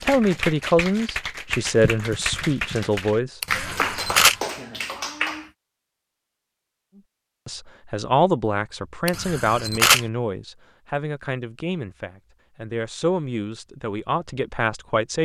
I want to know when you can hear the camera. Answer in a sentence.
You can hear the camera from 3.4 to 4.3 s and from 9.1 to 10.0 s.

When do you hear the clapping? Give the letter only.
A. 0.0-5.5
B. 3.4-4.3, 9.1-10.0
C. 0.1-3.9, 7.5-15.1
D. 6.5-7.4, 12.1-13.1
A.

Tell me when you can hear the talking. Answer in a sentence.
The talking can be heard from 0.1 to 3.9 s and from 7.5 to 15.1 s.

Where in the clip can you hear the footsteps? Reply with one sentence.
The footsteps can't be heard in this clip.